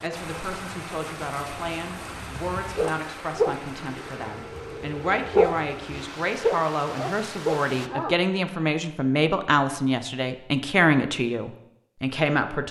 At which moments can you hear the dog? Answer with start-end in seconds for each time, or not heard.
2.8-8.2.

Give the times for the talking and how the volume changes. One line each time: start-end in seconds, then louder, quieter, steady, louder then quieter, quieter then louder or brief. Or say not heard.
0.0-12.6 louder.